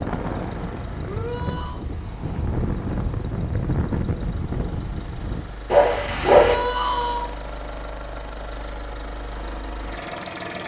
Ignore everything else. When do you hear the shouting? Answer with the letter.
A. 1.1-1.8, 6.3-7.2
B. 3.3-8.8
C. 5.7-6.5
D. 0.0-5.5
A.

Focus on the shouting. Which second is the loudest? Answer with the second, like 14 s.
7 s.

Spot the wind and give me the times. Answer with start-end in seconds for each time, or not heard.
0.0-5.5.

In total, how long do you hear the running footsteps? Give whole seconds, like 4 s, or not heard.
not heard.